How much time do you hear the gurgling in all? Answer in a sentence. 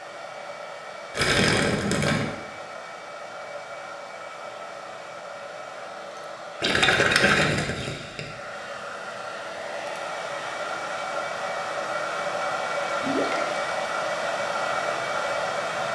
The gurgling can be heard for 3 seconds in total.